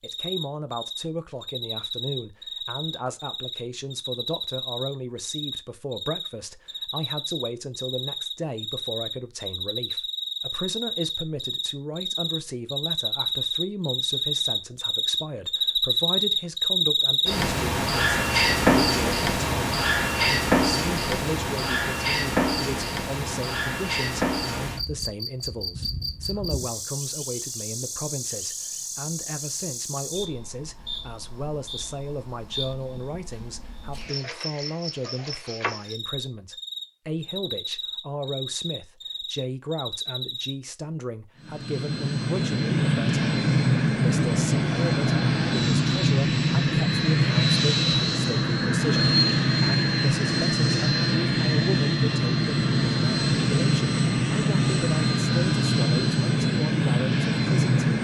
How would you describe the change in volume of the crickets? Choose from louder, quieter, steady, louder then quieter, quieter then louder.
louder then quieter.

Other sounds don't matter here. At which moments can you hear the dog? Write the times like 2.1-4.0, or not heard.
not heard.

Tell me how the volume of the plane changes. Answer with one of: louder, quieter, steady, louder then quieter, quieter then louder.
steady.